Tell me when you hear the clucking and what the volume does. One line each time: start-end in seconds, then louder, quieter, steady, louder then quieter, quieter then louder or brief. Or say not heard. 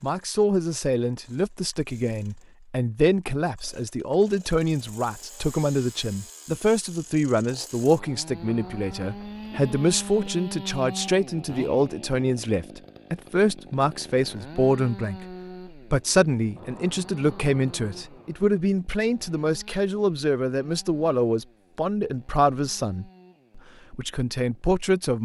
not heard.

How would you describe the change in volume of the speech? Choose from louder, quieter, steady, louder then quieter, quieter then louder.
steady.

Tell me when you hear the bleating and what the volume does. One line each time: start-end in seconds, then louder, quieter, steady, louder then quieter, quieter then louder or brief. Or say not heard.
not heard.